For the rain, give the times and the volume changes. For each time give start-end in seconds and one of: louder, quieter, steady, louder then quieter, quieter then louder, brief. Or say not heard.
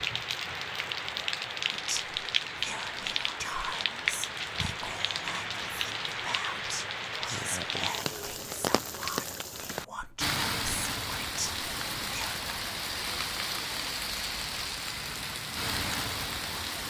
0.0-16.8 steady.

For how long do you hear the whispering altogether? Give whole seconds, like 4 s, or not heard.
11 s.